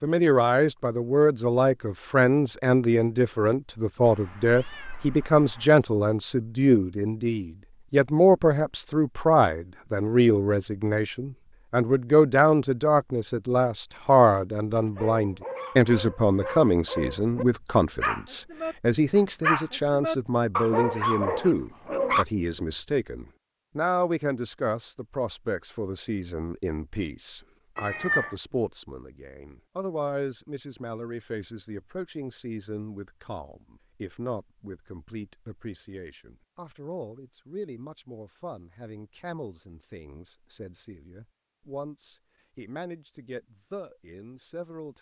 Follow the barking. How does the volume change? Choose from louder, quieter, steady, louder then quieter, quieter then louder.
louder.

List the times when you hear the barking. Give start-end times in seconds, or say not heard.
14.8-22.2.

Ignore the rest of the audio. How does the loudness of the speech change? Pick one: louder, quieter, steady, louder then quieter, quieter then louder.
quieter.